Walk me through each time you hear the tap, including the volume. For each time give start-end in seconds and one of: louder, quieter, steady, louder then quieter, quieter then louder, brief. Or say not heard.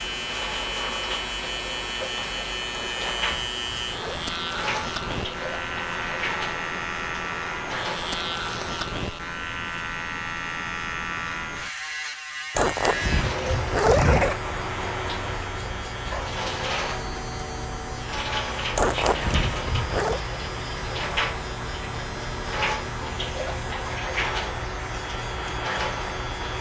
0.0-8.9 steady
12.9-26.5 steady.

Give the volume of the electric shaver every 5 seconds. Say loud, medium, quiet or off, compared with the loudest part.
loud, loud, loud, medium, medium, medium.